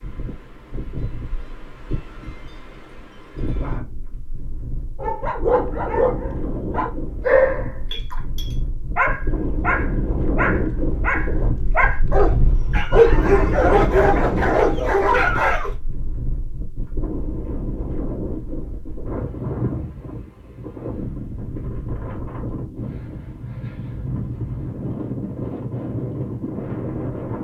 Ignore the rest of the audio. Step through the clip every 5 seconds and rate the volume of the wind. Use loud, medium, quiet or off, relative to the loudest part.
medium, medium, loud, medium, medium, loud.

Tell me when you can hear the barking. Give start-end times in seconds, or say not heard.
5.0-15.7.